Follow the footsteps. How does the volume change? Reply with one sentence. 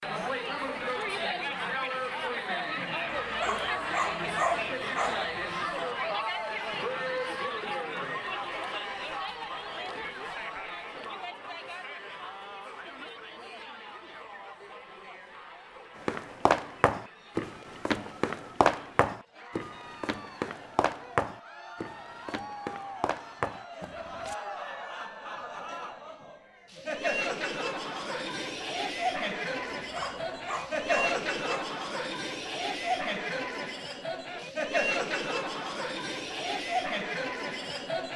The volume of the footsteps goes down.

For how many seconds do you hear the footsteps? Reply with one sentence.
The footsteps can be heard for 8 seconds in total.